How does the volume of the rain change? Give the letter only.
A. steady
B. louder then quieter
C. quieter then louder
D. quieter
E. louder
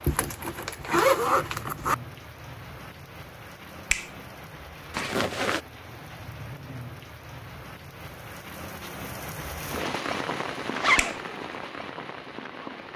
E.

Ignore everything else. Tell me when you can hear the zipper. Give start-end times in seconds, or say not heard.
0.0-1.9, 4.9-5.6, 10.8-11.2.